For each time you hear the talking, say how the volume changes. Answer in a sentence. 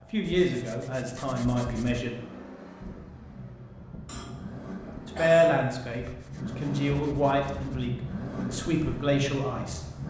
You can hear the talking briefly from 0.0 to 2.1 s; and from 5.0 to 9.8 s, getting quieter then louder.